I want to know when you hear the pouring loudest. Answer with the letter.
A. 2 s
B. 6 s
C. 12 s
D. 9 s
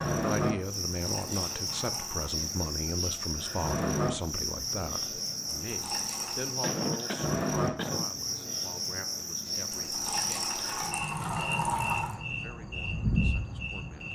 C.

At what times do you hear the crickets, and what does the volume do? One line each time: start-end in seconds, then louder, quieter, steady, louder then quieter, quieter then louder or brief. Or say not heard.
0.0-14.0 steady.